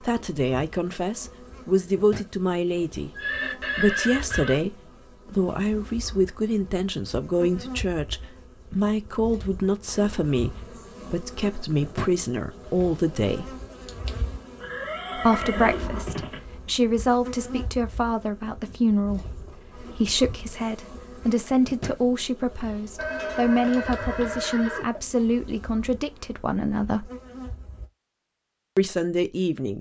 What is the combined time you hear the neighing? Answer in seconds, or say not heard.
5 s.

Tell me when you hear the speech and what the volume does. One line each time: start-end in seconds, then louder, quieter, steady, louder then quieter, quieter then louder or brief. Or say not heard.
0.0-13.6 steady
15.2-27.1 steady
28.8-29.7 brief.